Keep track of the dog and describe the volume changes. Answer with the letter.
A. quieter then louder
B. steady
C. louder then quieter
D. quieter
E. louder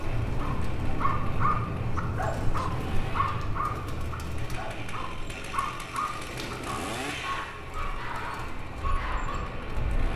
D.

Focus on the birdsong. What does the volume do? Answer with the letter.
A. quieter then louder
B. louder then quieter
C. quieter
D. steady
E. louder
C.